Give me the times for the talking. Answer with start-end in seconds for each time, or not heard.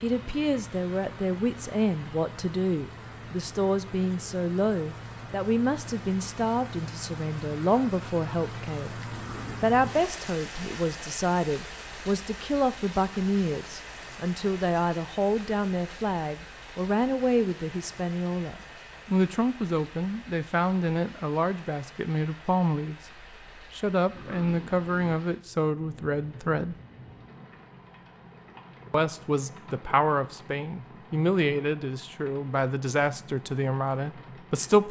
0.0-9.0, 9.6-26.8, 28.9-34.8.